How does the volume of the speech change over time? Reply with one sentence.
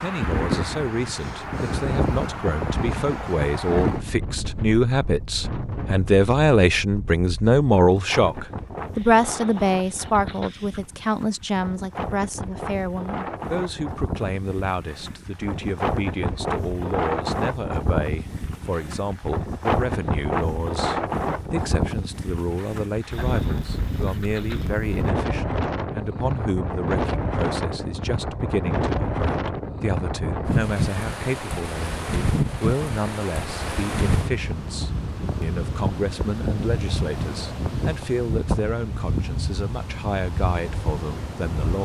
The volume of the speech goes down.